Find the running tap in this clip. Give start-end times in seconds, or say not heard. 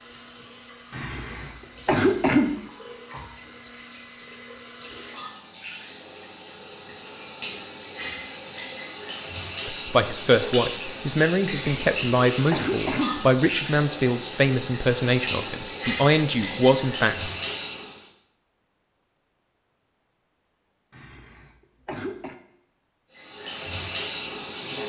0.0-18.1, 23.1-24.8.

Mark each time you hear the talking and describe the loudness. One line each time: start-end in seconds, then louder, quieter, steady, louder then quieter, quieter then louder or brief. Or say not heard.
9.7-17.3 steady.